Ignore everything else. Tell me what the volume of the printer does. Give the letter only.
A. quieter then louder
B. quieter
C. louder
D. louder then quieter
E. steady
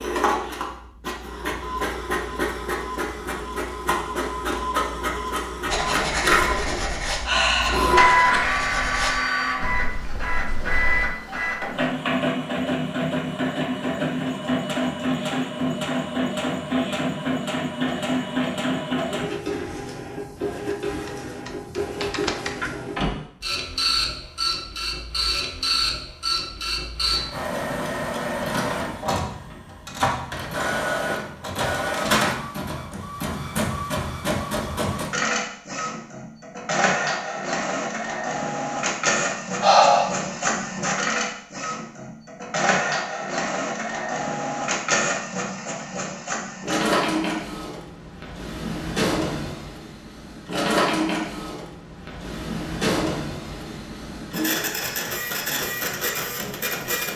E.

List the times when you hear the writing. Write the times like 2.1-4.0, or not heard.
5.7-11.1.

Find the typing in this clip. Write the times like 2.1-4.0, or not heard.
20.9-22.7.